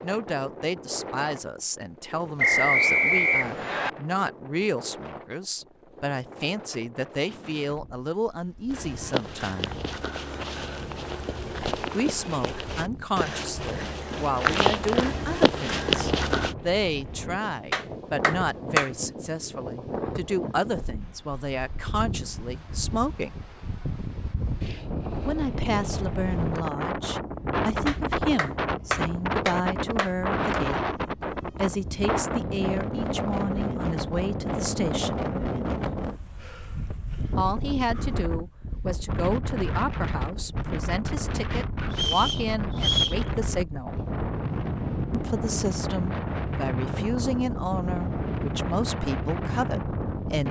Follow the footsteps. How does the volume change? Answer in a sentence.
The volume of the footsteps goes up.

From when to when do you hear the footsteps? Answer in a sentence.
The footsteps can be heard from 8.7 to 16.6 s.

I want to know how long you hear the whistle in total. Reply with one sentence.
You can hear the whistle for 3 seconds altogether.